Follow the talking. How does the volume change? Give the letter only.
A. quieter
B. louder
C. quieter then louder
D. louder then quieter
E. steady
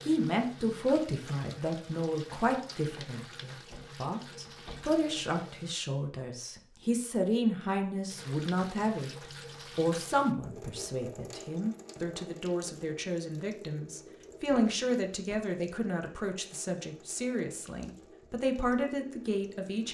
E.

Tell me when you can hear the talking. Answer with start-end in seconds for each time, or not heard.
0.0-19.8.